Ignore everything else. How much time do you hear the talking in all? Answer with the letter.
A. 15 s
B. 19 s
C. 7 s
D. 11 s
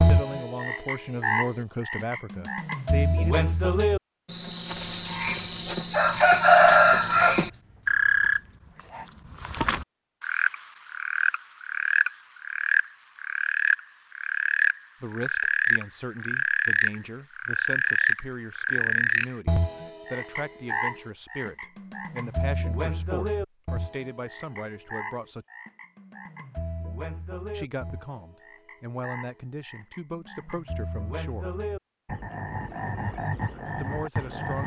B.